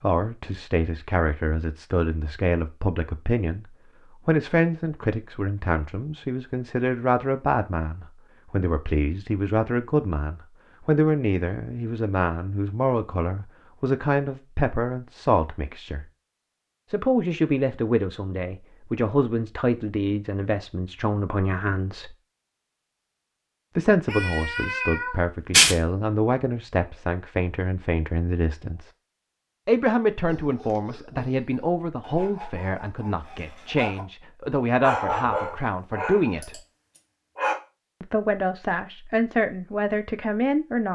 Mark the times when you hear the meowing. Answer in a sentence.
You can hear the meowing from 24.1 to 25.8 s.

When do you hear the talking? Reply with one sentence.
The talking can be heard from 0.0 to 16.1 s, from 16.9 to 22.1 s, from 23.8 to 28.9 s, from 29.6 to 36.6 s and from 38.0 to 40.9 s.